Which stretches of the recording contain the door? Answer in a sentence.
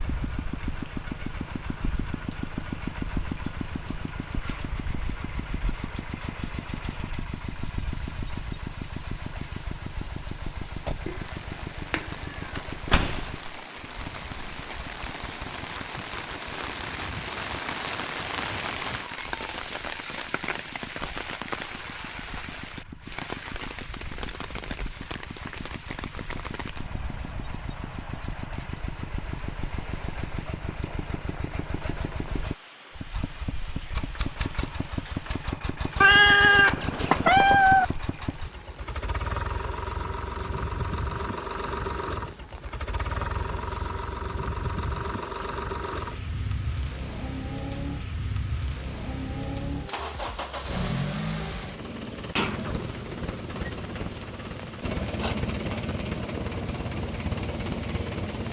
You can hear the door from 12.8 to 13.6 s.